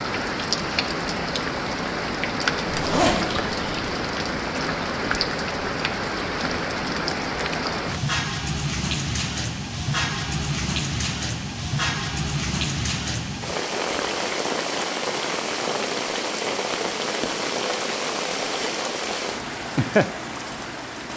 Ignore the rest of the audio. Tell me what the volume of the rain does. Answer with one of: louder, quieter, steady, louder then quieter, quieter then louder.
steady.